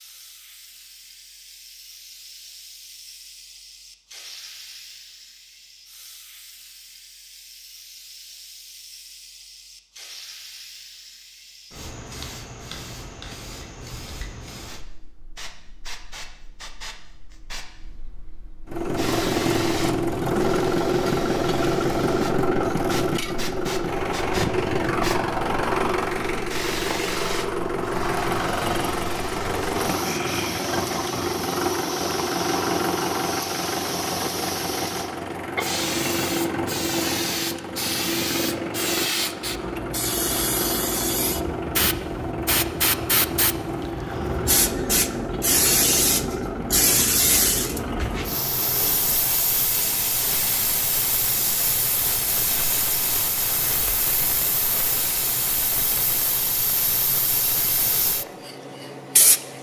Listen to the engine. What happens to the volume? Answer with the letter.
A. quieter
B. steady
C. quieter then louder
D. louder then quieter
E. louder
A.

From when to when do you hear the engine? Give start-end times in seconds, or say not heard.
18.6-49.1.